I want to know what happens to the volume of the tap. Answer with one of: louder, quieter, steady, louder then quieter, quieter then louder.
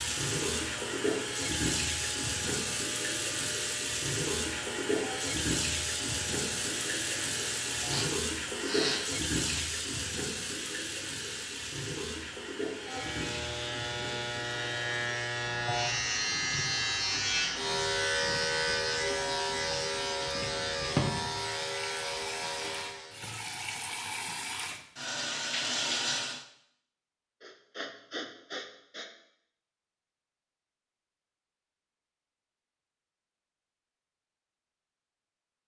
quieter then louder.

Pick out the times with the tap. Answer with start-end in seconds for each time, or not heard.
0.0-26.4.